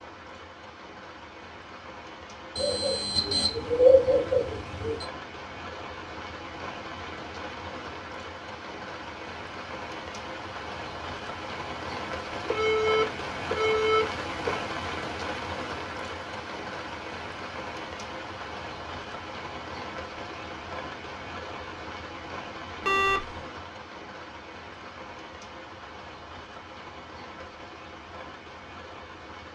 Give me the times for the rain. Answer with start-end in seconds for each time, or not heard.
0.0-29.5.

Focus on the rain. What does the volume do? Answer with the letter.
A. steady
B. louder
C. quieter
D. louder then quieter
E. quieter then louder
D.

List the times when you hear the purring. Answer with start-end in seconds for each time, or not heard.
not heard.